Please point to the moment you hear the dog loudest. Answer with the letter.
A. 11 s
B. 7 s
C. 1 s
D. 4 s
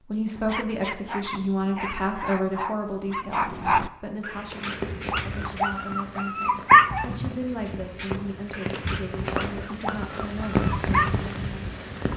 B.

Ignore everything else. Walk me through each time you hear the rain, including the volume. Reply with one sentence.
You can hear the rain from 4.2 to 12.1 s, getting louder.